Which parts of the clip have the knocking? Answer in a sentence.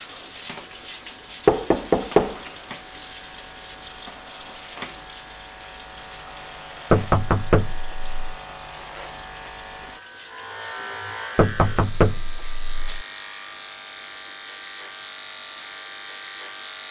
The knocking can be heard from 1.4 to 2.4 s, from 6.9 to 8.1 s and from 11.3 to 13.1 s.